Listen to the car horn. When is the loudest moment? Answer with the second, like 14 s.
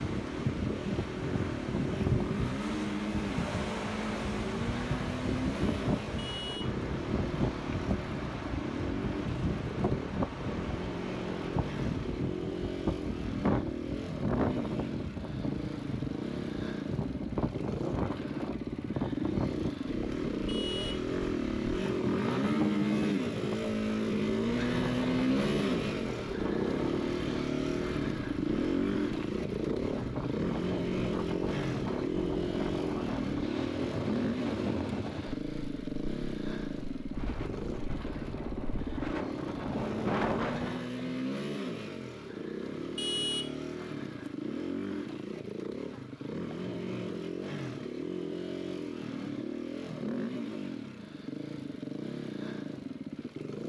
43 s.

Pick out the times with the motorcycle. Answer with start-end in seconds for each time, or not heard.
0.0-53.6.